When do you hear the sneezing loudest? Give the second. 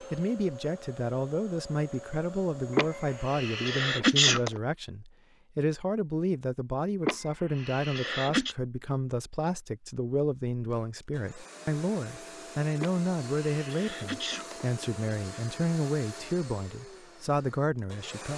4 s.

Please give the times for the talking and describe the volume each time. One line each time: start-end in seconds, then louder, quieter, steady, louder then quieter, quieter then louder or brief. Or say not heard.
0.0-18.3 steady.